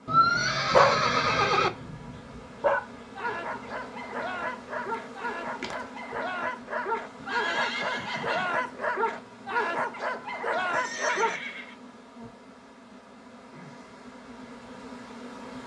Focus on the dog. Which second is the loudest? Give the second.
1 s.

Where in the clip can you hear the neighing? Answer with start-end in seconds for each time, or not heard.
0.1-1.7, 7.2-8.5, 10.7-11.8.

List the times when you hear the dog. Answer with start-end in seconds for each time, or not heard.
0.7-11.4.